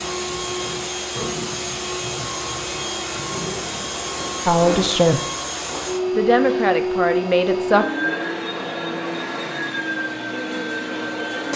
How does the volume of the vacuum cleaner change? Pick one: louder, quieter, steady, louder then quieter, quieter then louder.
steady.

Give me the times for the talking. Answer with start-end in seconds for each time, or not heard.
4.5-5.2, 6.2-7.8.